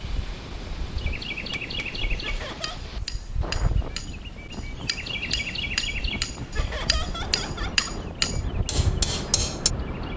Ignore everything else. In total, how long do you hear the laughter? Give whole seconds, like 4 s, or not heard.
2 s.